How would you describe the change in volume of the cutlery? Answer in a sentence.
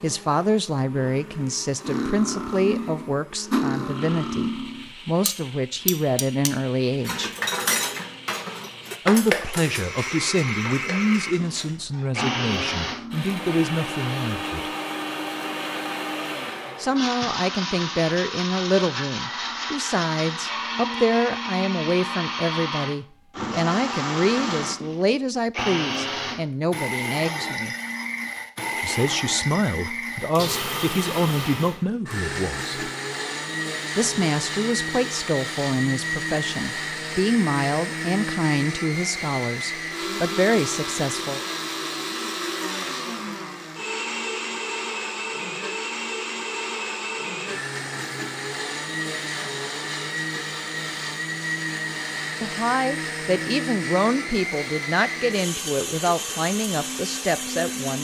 The loudness of the cutlery goes down.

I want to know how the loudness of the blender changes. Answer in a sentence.
The loudness of the blender goes up.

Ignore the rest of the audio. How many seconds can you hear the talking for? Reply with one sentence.
You can hear the talking for 41 seconds altogether.